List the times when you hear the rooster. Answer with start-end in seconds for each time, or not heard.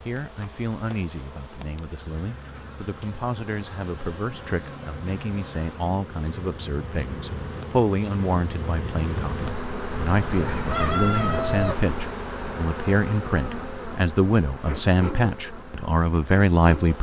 9.9-11.9.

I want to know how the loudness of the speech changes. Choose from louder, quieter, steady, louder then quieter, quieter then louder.
louder.